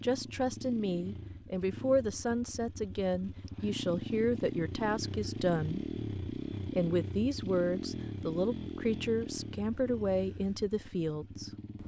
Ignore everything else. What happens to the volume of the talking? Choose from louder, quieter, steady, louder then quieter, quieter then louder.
steady.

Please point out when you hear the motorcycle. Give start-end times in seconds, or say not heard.
0.0-11.8.